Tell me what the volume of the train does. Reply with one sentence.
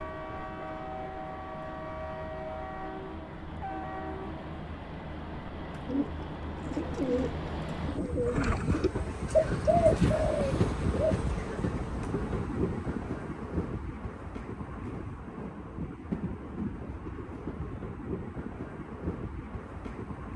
The volume of the train goes up, then down.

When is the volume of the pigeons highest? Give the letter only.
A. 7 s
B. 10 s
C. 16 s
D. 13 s
B.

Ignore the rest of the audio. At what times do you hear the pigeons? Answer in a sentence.
You can hear the pigeons from 5.8 to 11.3 s.